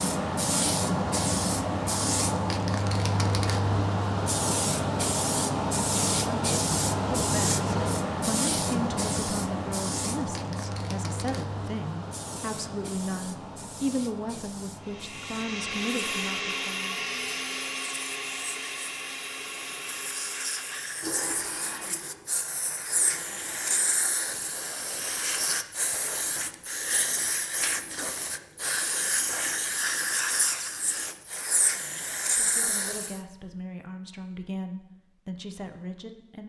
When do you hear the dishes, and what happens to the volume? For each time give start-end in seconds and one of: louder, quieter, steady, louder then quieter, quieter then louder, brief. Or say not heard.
not heard.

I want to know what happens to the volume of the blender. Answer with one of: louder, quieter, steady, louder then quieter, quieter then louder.
quieter.